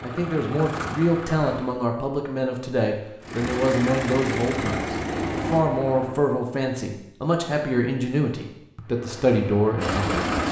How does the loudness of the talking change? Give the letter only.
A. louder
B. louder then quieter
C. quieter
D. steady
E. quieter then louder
D.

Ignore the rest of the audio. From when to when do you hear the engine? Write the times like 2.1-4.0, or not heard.
0.0-1.8, 3.2-6.2, 8.8-10.4.